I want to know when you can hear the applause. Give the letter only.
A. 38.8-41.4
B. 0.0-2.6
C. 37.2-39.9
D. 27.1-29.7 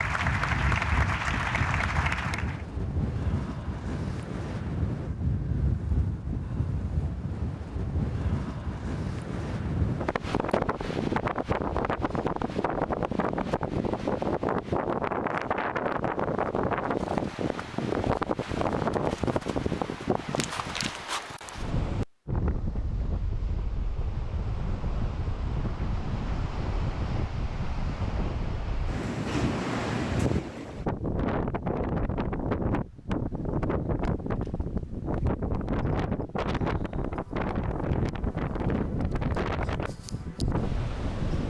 B.